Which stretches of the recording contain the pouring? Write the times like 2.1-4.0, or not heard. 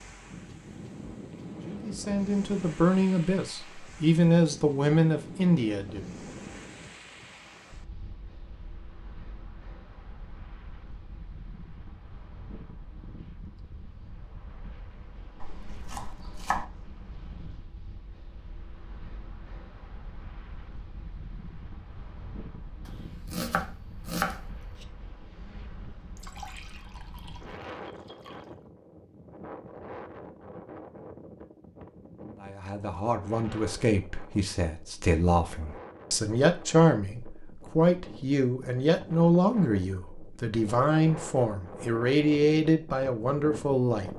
26.1-28.5.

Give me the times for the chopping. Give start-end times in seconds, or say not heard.
15.4-16.6, 22.9-24.9.